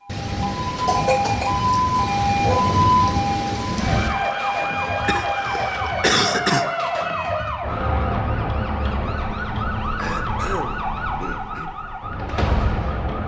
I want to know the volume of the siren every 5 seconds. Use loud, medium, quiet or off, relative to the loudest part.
loud, loud, medium.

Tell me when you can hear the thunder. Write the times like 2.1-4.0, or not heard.
0.1-4.1.